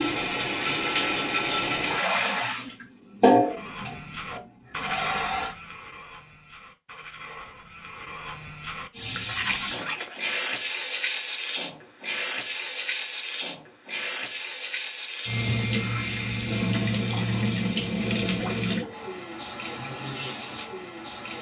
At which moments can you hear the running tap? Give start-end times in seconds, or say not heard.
0.0-5.5, 8.9-21.3.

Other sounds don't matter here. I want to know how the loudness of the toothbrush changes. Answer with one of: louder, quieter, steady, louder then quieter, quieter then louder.
quieter then louder.